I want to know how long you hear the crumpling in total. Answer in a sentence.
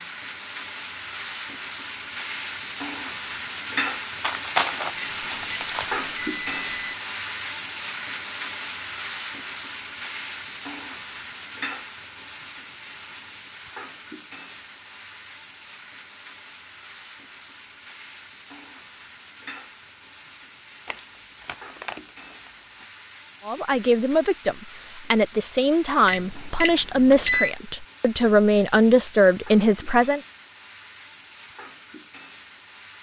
The crumpling can be heard for 4 seconds in total.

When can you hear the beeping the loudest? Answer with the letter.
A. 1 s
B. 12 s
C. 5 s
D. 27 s
D.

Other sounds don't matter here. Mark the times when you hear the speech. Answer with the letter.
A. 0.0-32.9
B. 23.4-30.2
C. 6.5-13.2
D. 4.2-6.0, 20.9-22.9
B.